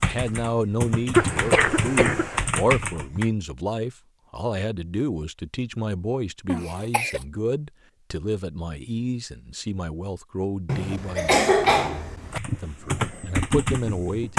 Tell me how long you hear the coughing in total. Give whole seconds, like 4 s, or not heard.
4 s.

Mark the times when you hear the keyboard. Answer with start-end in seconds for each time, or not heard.
0.0-3.3, 12.3-14.3.